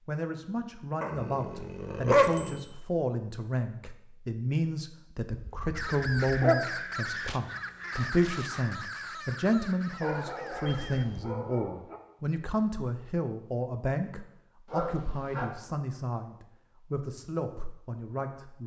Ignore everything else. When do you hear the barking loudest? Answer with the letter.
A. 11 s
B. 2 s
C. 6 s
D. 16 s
B.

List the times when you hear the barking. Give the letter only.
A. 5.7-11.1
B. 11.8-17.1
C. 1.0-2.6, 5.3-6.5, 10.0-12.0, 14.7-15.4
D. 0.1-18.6
C.